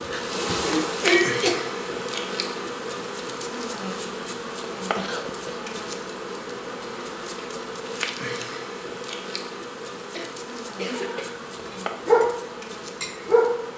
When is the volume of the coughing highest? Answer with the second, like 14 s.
1 s.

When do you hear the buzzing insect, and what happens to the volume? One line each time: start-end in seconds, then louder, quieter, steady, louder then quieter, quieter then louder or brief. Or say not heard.
0.0-13.7 quieter.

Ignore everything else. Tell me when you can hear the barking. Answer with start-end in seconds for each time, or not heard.
10.9-13.7.